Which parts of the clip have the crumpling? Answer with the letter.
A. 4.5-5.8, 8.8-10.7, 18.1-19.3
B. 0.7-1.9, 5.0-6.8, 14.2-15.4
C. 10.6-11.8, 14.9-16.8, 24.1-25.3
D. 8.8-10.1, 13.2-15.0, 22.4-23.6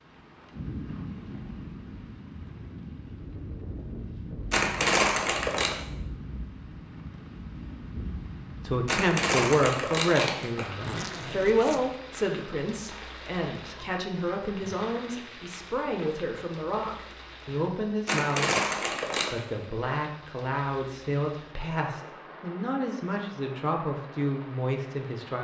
A.